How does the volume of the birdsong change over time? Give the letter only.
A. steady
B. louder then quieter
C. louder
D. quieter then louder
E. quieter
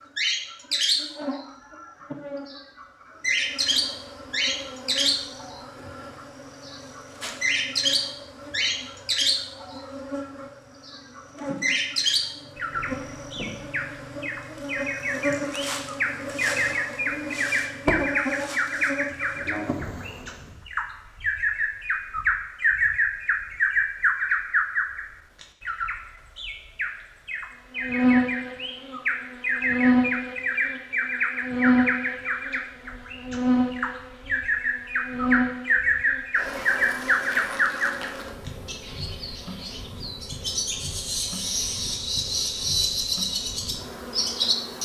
A.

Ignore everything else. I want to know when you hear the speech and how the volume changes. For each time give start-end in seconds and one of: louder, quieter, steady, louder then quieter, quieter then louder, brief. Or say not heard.
not heard.